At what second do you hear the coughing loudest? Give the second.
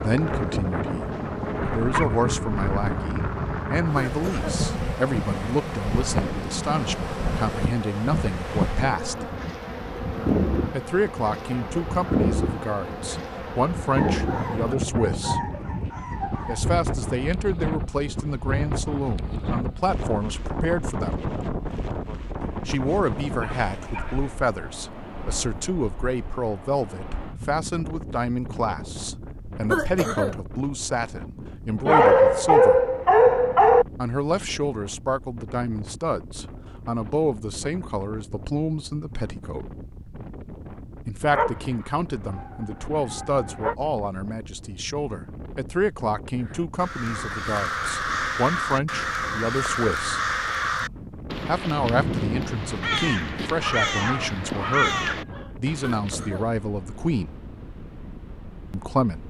30 s.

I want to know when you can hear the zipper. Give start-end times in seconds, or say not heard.
not heard.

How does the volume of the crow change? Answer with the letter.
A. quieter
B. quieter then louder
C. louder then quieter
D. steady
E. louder
D.